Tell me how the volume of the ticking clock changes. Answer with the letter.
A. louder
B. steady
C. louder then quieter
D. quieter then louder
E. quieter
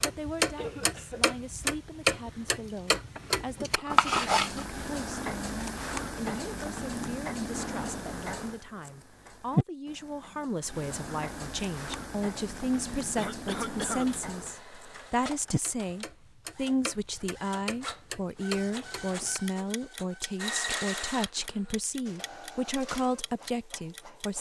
E.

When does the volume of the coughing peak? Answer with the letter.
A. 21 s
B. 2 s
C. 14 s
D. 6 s
C.